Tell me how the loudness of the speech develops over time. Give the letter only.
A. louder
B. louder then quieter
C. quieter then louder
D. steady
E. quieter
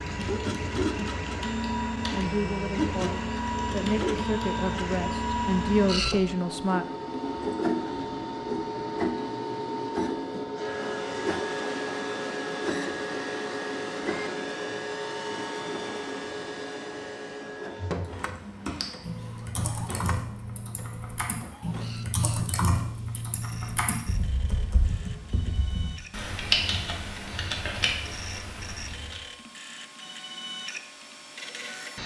A.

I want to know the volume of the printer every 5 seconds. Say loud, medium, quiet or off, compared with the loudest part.
loud, loud, loud, medium, quiet, quiet, medium.